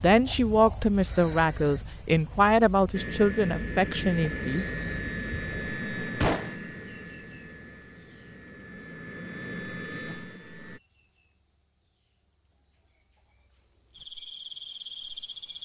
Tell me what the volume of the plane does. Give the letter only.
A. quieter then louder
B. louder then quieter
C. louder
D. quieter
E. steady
A.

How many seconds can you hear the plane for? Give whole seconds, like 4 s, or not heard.
8 s.